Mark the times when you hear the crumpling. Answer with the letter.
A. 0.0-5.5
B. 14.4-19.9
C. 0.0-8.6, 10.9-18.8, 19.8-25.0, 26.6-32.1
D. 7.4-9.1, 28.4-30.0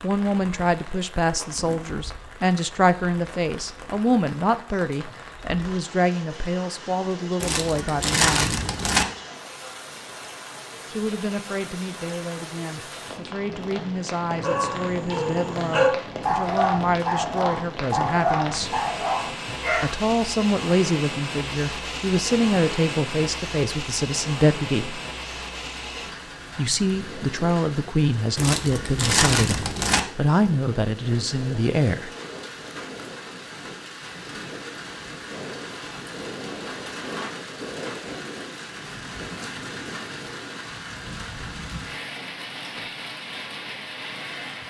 D.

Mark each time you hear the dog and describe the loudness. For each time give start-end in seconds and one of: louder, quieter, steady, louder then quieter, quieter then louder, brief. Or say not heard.
14.4-19.9 louder then quieter.